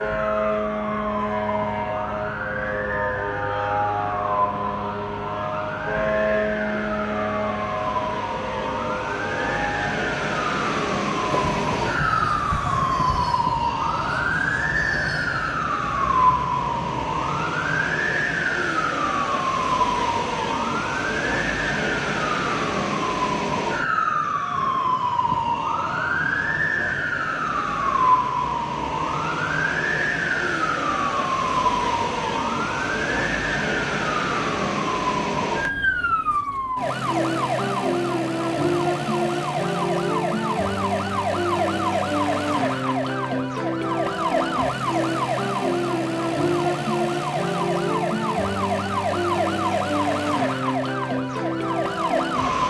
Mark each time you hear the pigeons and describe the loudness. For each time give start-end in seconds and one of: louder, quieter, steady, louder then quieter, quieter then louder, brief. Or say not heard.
not heard.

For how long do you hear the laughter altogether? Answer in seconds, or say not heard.
2 s.